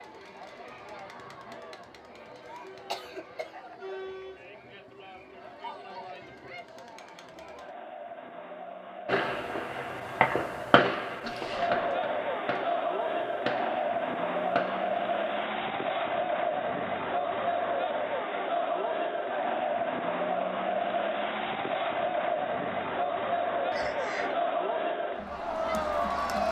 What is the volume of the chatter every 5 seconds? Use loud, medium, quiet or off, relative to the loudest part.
quiet, quiet, loud, loud, loud, loud.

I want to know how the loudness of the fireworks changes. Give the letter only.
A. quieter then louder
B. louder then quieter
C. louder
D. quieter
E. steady
D.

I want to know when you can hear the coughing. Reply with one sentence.
You can hear the coughing from 2.6 to 3.5 s, from 11.2 to 11.9 s and from 23.7 to 24.5 s.